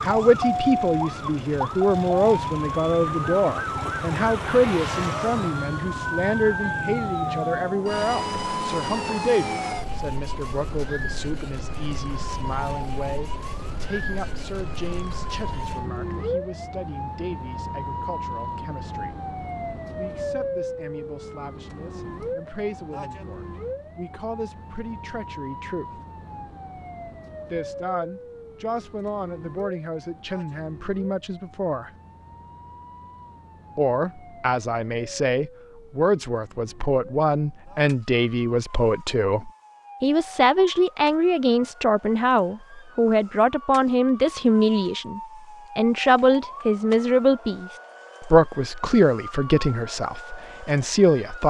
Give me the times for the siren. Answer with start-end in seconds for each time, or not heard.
0.0-51.4.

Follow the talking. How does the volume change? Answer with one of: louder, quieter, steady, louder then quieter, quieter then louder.
quieter then louder.